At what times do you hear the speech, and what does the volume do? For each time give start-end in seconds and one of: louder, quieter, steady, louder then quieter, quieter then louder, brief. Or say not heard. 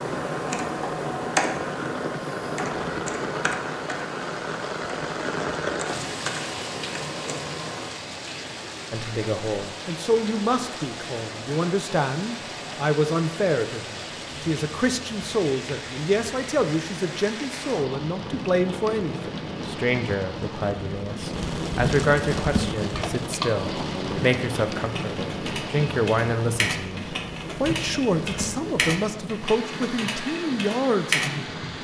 8.9-31.6 steady.